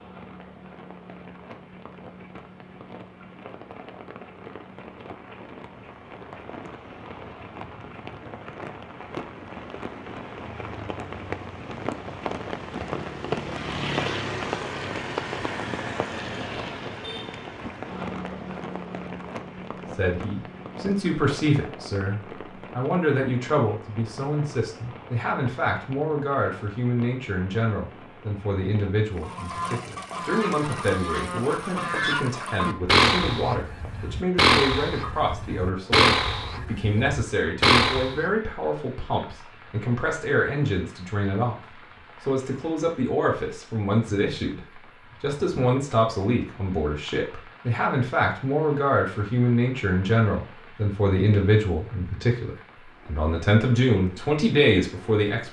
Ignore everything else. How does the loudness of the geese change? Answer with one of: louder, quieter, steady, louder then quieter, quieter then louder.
louder.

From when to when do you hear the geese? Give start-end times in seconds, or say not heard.
29.2-38.2.